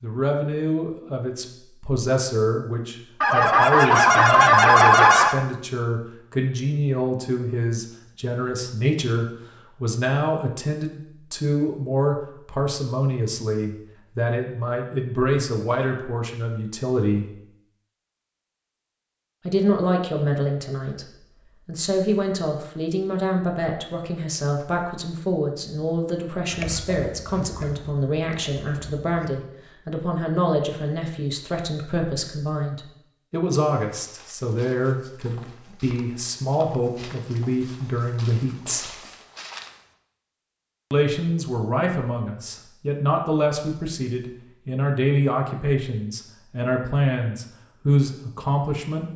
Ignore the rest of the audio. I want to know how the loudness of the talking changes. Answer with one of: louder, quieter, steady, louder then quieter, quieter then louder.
steady.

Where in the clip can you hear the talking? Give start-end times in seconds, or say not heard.
0.0-17.4, 19.4-38.9, 40.9-49.1.